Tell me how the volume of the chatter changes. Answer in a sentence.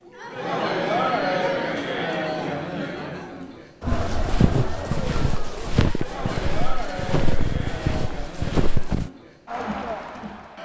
The volume of the chatter goes down.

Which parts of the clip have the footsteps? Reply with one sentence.
You can hear the footsteps from 3.9 to 9.1 s.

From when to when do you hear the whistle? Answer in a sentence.
The whistle can't be heard in this clip.